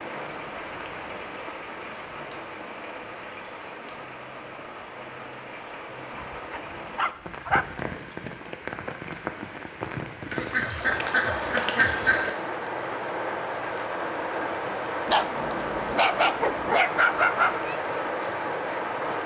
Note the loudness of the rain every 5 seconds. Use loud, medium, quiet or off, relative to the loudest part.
medium, medium, loud, loud.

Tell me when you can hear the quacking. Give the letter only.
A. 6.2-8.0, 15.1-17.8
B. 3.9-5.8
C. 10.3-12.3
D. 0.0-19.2
C.